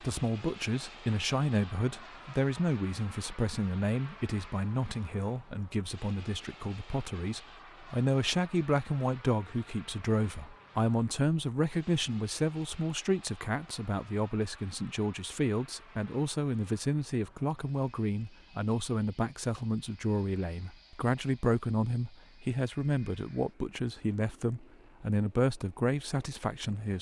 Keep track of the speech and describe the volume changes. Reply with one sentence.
The loudness of the speech stays about the same.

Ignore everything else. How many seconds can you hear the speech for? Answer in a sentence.
You can hear the speech for 27 seconds altogether.